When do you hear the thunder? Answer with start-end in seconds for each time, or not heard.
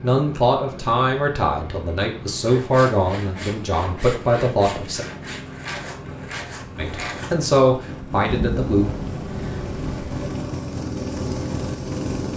8.3-10.2.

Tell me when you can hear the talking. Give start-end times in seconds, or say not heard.
0.0-5.0, 6.8-8.9.